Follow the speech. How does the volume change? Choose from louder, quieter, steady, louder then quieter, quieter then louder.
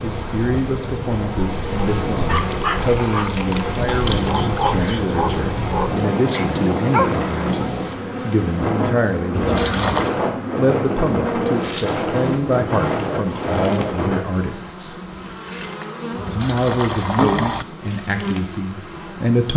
steady.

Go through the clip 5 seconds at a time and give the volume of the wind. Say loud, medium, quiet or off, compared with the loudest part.
medium, loud, loud, off.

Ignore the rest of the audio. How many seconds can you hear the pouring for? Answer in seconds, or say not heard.
5 s.